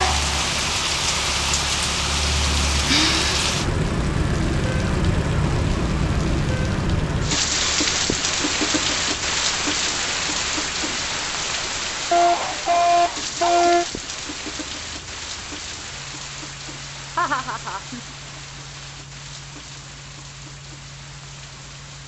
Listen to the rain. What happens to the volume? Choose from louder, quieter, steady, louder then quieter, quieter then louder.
quieter.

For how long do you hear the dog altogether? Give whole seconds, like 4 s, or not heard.
2 s.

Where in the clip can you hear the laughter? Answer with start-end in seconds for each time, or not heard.
17.1-18.0.